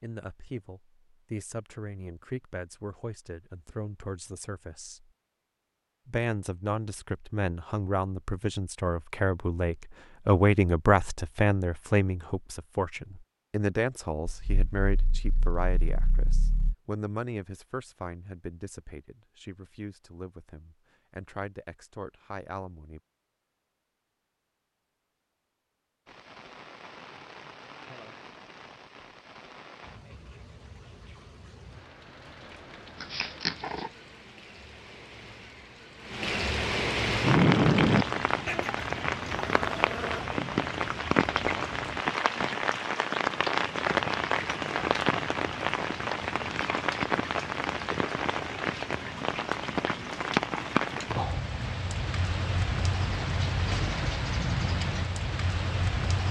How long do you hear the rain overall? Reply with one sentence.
You can hear the rain for 30 seconds altogether.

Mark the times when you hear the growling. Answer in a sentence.
The growling can be heard from 14.2 to 16.8 s, from 33.0 to 33.9 s and from 38.5 to 40.2 s.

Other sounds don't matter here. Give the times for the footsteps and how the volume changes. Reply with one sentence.
You can't hear the footsteps here.